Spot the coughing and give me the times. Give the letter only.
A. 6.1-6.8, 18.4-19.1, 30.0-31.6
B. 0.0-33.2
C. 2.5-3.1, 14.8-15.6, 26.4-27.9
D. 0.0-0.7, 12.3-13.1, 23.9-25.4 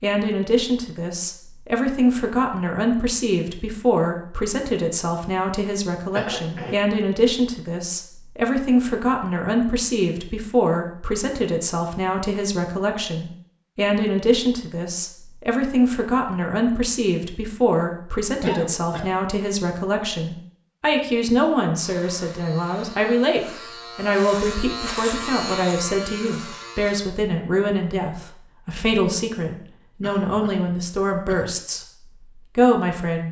A.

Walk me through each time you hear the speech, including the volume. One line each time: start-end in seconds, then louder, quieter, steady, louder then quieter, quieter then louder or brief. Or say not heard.
0.0-33.2 steady.